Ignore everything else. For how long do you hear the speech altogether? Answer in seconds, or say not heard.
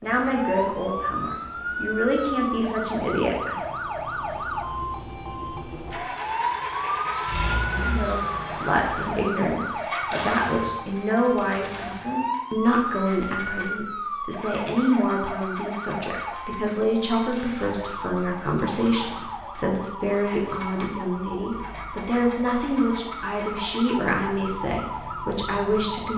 22 s.